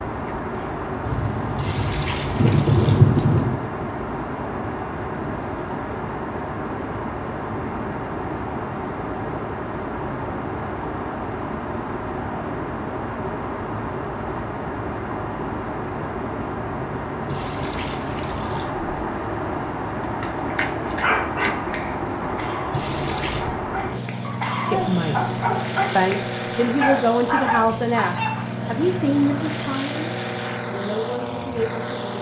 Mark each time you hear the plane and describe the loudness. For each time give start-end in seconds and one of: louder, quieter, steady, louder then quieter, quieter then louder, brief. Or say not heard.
0.0-32.1 steady.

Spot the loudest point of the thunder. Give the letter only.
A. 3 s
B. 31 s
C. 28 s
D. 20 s
A.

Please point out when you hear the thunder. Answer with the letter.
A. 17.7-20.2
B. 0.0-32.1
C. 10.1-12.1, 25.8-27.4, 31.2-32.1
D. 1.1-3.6
D.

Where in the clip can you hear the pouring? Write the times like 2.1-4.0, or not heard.
1.6-3.5, 17.2-18.9, 22.7-23.6.